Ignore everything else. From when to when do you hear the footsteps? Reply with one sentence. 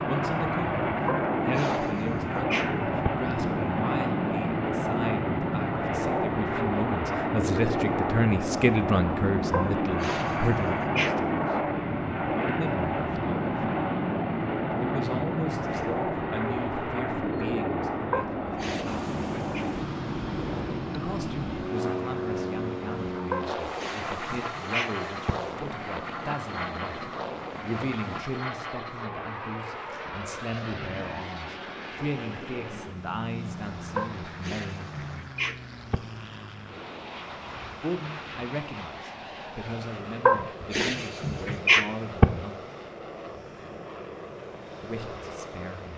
The footsteps can't be heard in this clip.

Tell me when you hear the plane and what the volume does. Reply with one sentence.
You can hear the plane from 0.0 to 45.9 s, getting quieter.